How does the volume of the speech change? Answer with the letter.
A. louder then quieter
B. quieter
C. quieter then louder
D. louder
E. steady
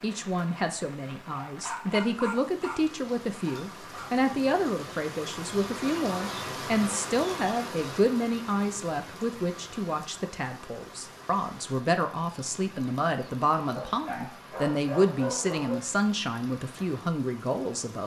E.